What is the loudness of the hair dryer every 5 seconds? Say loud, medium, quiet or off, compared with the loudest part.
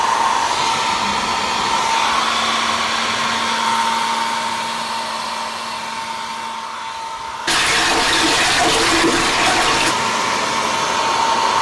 loud, medium, loud.